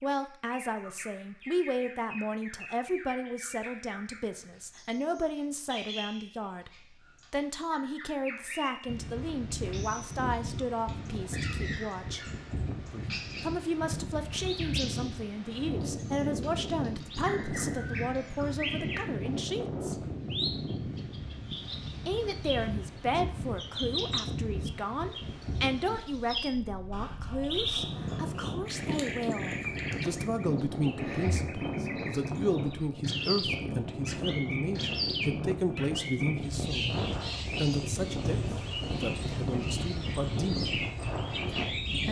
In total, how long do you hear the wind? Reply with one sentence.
The wind can be heard for 33 seconds in total.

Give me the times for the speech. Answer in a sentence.
The speech can be heard from 0.0 to 12.2 s, from 13.4 to 20.0 s and from 22.1 to 40.7 s.